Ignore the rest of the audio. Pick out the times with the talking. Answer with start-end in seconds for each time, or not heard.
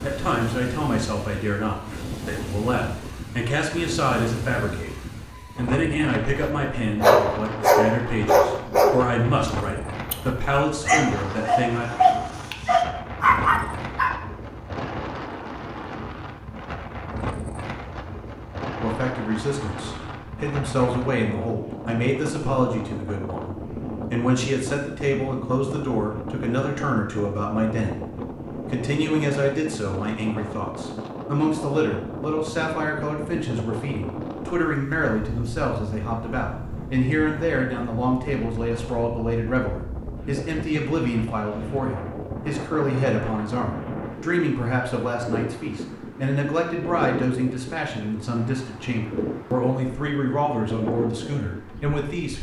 0.0-5.0, 5.5-11.9, 18.8-52.3.